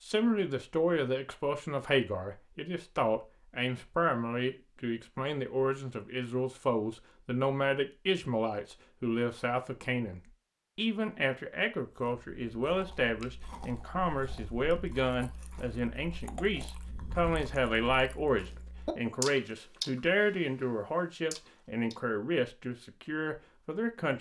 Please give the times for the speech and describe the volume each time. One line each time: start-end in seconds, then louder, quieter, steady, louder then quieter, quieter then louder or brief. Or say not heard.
0.0-24.1 steady.